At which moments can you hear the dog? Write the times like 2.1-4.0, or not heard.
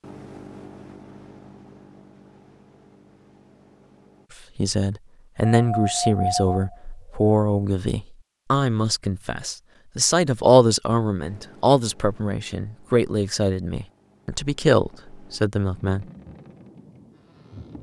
5.5-7.3.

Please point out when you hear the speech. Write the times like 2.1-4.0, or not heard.
4.5-16.1.